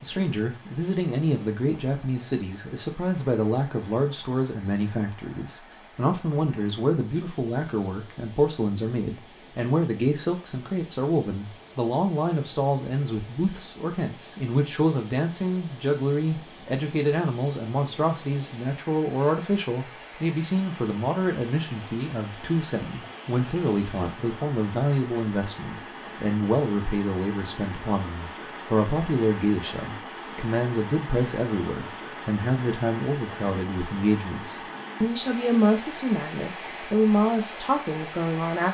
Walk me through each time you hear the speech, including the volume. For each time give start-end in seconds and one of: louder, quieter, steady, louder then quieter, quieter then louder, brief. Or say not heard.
0.0-38.6 steady.